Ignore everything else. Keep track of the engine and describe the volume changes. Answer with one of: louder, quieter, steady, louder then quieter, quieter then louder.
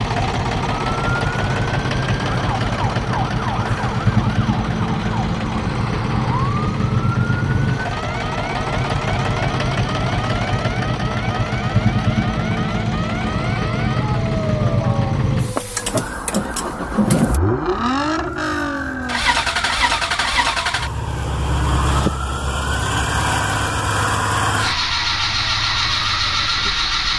steady.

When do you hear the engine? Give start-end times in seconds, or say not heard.
0.0-27.1.